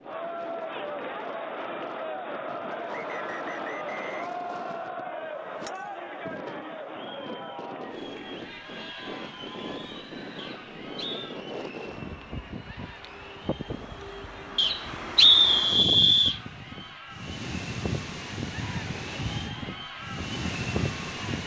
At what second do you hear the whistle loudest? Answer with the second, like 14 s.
15 s.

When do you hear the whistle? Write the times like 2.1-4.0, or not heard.
2.9-4.9, 10.3-11.4, 14.6-16.4.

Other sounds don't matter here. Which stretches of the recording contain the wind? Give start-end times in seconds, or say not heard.
0.0-21.4.